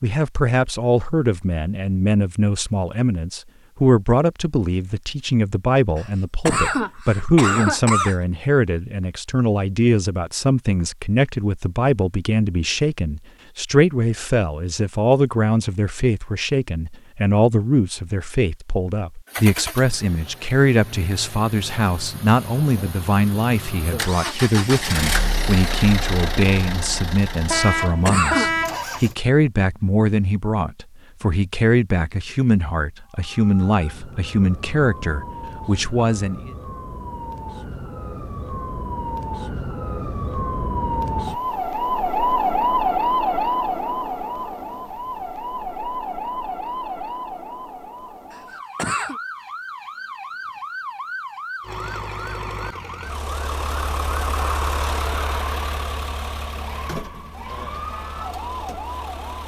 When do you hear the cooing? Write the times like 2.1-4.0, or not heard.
not heard.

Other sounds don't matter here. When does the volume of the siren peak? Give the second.
43 s.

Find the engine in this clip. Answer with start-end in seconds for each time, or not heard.
19.2-29.1, 51.6-59.4.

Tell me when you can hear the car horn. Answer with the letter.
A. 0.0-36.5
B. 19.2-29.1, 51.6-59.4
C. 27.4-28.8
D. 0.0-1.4
C.